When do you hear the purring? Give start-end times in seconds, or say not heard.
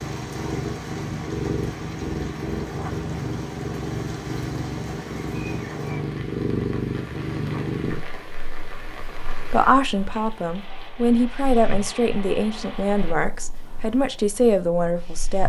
0.0-15.4.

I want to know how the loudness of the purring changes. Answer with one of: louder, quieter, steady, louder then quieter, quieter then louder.
quieter.